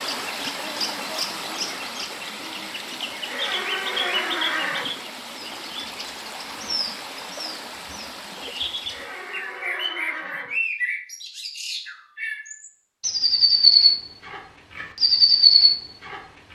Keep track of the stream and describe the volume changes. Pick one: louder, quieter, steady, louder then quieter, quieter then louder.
quieter.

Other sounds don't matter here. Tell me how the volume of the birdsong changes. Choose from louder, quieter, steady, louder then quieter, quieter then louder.
louder.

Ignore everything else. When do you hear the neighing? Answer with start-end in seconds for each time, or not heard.
3.2-5.0, 8.9-10.6.